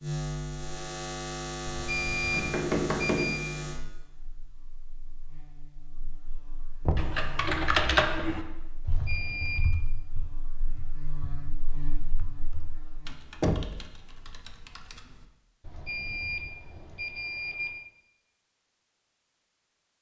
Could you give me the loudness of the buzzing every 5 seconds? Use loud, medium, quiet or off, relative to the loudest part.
loud, quiet, medium, off.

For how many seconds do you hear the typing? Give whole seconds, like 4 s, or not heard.
8 s.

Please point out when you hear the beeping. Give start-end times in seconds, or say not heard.
1.6-3.5, 8.8-9.7, 15.6-17.8.